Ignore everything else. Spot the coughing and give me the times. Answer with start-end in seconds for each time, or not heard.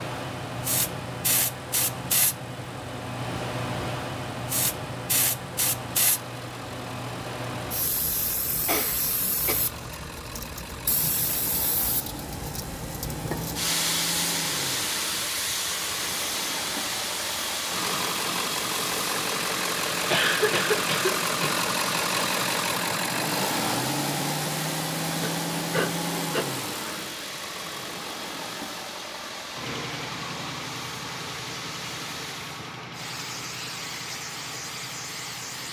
8.6-10.2, 20.1-21.6, 25.2-26.4.